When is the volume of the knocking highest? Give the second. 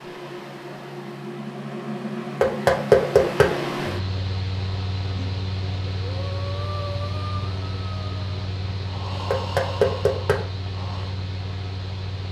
3 s.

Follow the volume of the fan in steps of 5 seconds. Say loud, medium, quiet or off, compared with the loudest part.
loud, loud, medium.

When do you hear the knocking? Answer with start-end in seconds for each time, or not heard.
2.4-3.5, 9.3-10.4.